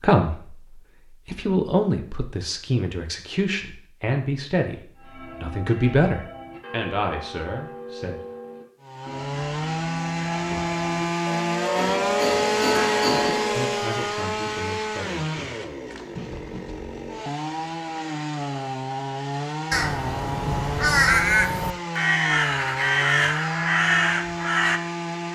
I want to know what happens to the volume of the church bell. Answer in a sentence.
The loudness of the church bell goes up.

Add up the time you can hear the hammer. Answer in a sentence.
The hammer can be heard for 2 seconds in total.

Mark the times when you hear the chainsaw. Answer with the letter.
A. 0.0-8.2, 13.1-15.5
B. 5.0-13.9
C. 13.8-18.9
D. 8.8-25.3
D.